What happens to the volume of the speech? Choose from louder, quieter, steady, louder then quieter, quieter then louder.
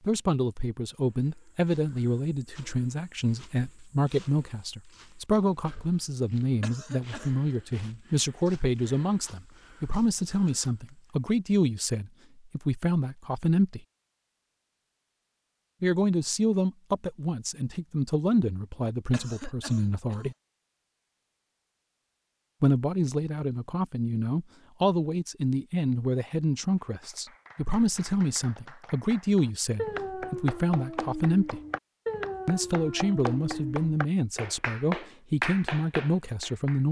steady.